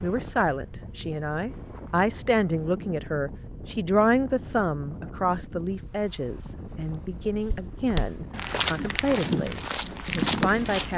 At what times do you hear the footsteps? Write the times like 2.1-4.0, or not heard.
7.3-10.9.